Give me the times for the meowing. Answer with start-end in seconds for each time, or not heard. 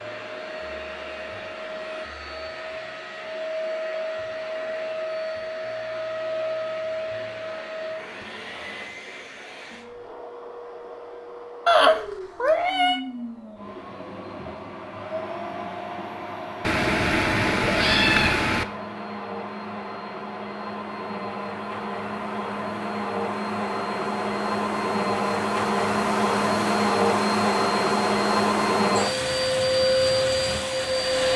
11.7-13.0, 16.6-18.6.